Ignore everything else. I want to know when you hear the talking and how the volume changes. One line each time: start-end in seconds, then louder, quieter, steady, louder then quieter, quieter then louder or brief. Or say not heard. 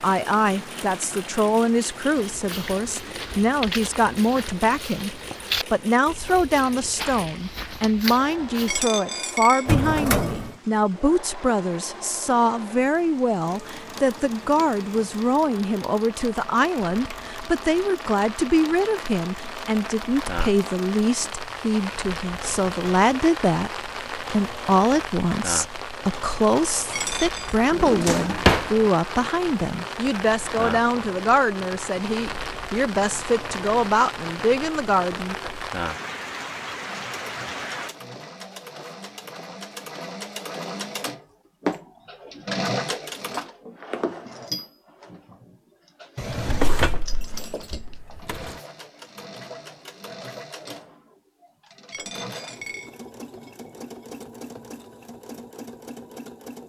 0.0-35.4 steady.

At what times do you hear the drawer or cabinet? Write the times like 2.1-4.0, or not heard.
9.7-10.5, 27.7-28.7, 46.1-48.5.